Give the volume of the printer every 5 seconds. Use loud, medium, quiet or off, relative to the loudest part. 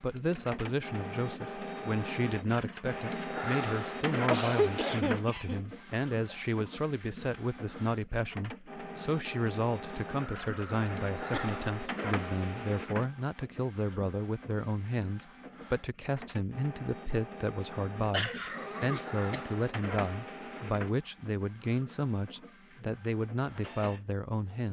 loud, medium, loud, medium, medium.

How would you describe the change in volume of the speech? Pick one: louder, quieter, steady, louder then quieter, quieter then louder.
steady.